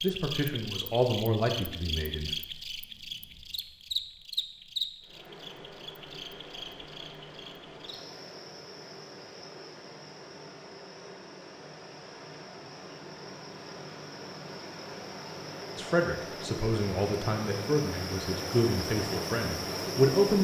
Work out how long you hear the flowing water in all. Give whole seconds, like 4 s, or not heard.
15 s.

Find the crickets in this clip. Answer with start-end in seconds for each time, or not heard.
0.0-20.3.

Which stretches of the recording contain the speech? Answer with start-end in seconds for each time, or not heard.
0.0-2.4, 15.8-20.3.